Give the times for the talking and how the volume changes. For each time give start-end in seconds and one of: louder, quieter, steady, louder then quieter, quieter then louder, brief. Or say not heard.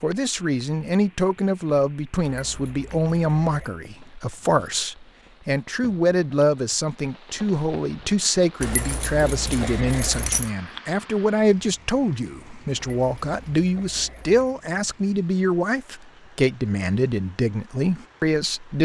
0.0-18.8 steady.